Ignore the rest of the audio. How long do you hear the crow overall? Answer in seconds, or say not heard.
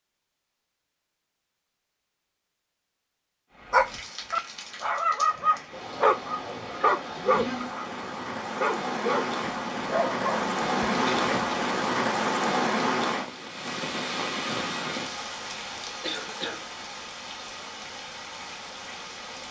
not heard.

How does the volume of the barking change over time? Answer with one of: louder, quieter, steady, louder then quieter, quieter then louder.
quieter.